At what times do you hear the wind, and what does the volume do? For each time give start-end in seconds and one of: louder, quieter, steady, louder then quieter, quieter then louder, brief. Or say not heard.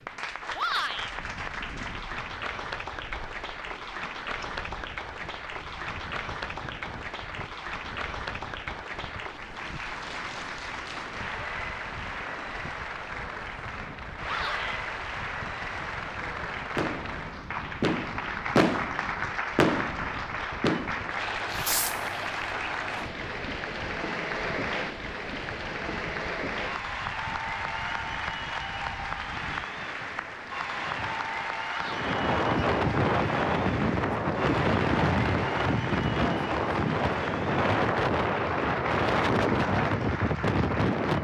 0.1-41.2 louder.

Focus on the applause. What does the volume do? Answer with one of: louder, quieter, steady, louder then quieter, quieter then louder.
steady.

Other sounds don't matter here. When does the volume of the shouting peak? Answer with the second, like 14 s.
1 s.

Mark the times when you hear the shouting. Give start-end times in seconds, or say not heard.
0.6-1.1, 14.2-14.8, 31.6-32.1.